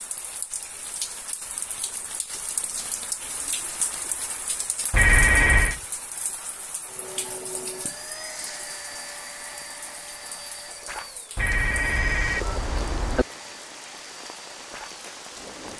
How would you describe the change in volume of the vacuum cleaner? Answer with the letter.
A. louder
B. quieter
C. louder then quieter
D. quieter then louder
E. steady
B.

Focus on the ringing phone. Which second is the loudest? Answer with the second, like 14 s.
5 s.